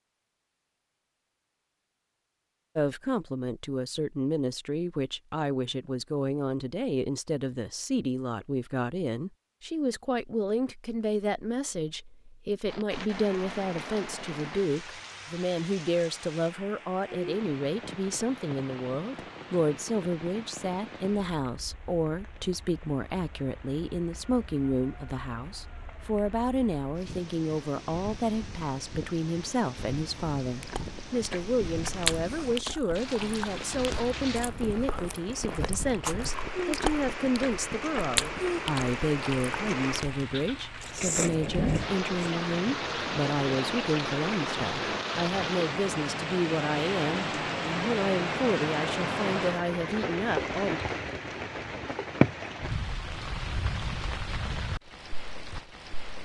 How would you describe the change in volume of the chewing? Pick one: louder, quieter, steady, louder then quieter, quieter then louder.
quieter then louder.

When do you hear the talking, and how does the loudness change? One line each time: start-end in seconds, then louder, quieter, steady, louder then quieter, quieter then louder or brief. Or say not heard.
2.8-50.8 steady.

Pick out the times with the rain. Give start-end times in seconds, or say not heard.
12.7-56.2.